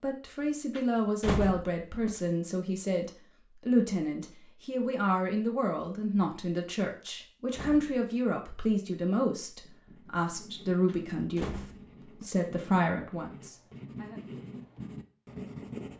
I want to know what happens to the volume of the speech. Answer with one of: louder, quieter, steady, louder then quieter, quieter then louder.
steady.